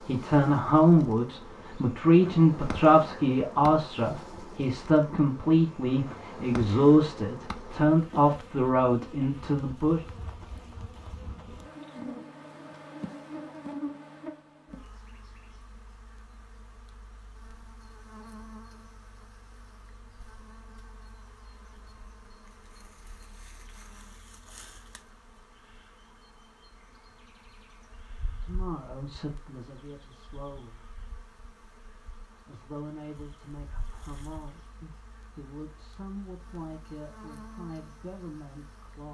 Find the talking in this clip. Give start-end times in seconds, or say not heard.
0.0-10.0, 28.4-30.9, 32.5-39.0.